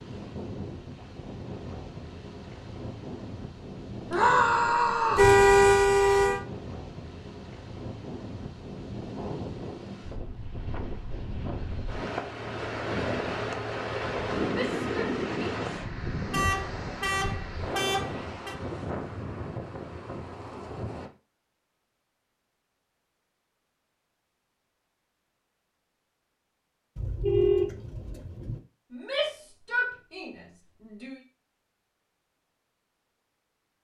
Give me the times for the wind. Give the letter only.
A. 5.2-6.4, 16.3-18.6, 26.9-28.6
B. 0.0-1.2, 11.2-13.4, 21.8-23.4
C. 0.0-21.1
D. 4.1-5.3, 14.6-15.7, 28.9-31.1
C.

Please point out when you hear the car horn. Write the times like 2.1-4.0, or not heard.
5.2-6.4, 16.3-18.6, 26.9-28.6.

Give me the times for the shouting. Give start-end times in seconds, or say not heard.
4.1-5.3, 14.6-15.7, 28.9-31.1.